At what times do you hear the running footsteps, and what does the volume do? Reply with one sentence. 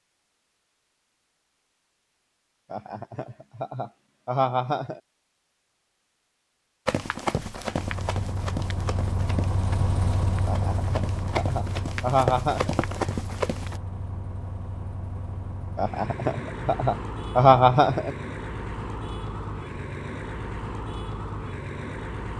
The running footsteps can be heard from 6.8 to 13.8 s, getting quieter then louder.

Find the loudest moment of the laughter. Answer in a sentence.
The loudest moment of the laughter is at 18 seconds.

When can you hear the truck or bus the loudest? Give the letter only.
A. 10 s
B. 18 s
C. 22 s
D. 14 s
A.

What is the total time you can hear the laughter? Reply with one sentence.
You can hear the laughter for 7 seconds altogether.